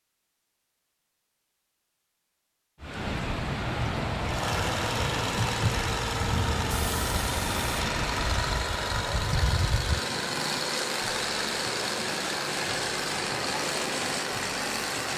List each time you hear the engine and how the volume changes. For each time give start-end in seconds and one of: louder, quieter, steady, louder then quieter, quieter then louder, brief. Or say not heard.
4.2-15.1 steady.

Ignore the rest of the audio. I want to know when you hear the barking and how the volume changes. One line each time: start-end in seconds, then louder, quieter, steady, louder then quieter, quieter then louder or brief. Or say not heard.
not heard.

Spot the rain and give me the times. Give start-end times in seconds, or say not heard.
2.8-15.1.